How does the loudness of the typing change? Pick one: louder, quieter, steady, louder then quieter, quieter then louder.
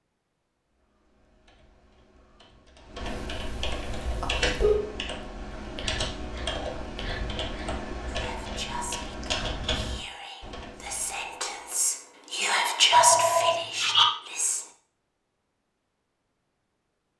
louder.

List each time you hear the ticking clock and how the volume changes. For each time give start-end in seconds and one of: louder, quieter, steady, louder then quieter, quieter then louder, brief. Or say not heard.
not heard.